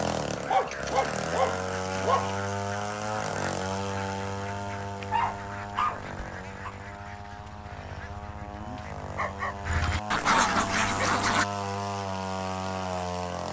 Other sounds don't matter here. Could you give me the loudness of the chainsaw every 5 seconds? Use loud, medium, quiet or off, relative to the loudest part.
loud, medium, loud.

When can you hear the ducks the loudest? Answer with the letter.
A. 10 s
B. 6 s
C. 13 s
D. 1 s
A.